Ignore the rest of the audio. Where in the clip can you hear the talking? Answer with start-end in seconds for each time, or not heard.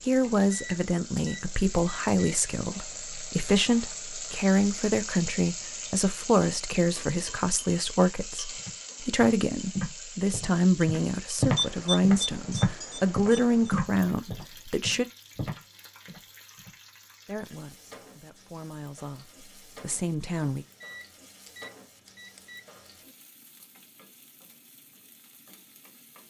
0.1-15.1, 17.2-20.6.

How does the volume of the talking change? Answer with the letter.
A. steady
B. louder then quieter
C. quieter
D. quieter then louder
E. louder
C.